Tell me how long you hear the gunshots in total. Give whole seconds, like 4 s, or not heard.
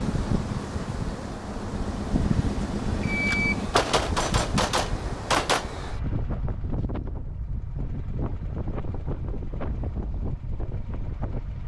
3 s.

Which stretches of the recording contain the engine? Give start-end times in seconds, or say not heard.
0.0-3.7.